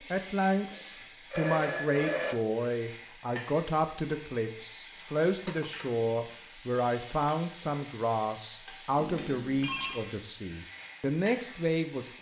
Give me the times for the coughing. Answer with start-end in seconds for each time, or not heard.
not heard.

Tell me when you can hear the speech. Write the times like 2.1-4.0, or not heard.
0.0-12.1.